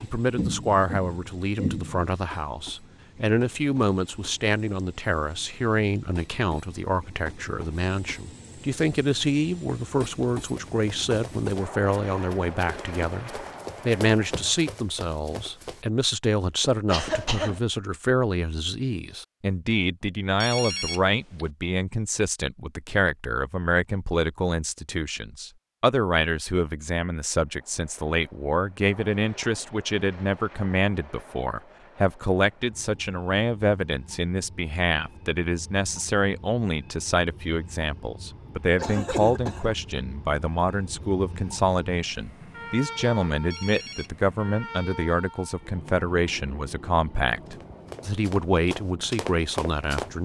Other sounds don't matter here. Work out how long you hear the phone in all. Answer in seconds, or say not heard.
2 s.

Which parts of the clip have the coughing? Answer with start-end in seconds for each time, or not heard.
0.3-2.1, 16.9-17.6, 38.8-39.8.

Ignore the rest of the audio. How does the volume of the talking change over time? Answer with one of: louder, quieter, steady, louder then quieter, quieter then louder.
steady.